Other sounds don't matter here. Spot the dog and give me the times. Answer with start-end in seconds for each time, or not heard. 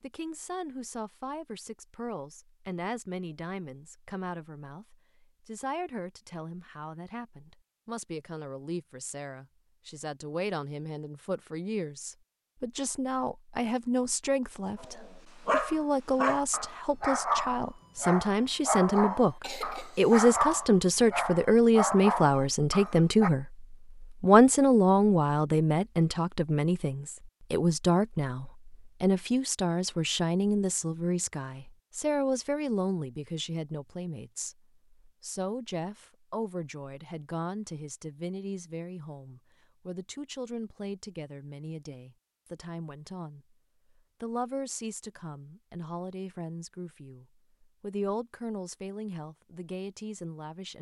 14.8-23.3.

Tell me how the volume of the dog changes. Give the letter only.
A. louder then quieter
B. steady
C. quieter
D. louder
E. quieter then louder
B.